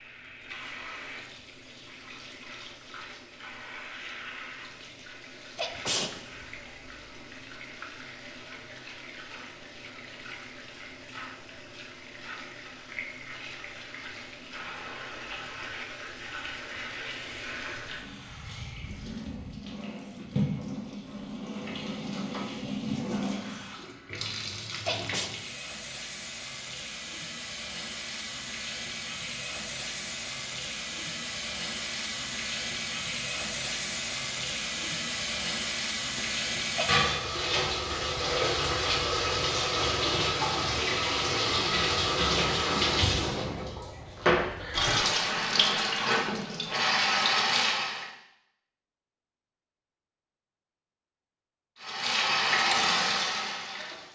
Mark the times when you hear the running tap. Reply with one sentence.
You can hear the running tap from 0.0 to 48.1 s and from 51.8 to 54.1 s.